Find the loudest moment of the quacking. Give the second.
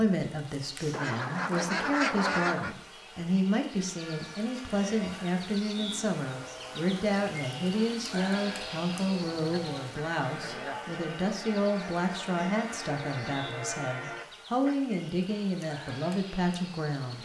2 s.